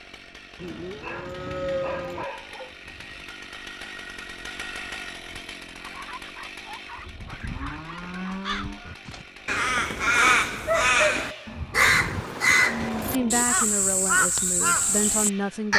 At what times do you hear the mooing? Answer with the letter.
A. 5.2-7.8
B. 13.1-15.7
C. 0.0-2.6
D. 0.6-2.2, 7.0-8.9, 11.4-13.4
D.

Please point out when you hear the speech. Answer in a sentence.
The speech can be heard from 13.1 to 15.7 s.